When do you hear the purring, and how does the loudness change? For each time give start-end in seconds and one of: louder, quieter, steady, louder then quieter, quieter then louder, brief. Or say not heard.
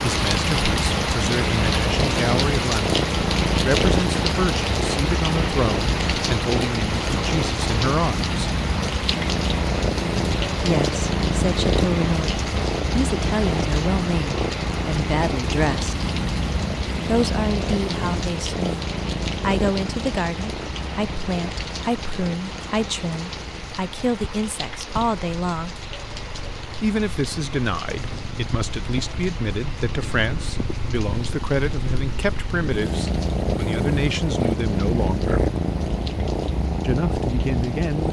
0.0-38.0 quieter then louder.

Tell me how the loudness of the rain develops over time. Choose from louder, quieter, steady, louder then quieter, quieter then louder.
quieter.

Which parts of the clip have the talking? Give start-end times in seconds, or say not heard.
0.0-8.5, 10.6-16.1, 17.1-25.8, 26.8-35.4, 36.8-38.0.